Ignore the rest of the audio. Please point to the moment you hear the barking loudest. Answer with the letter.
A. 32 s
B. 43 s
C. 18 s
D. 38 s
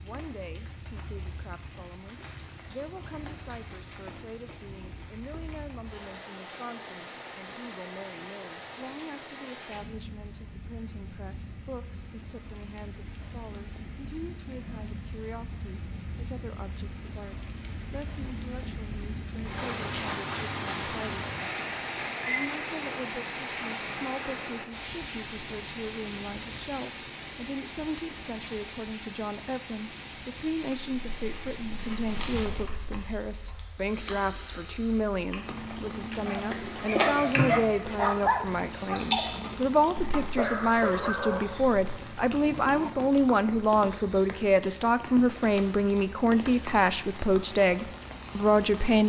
D.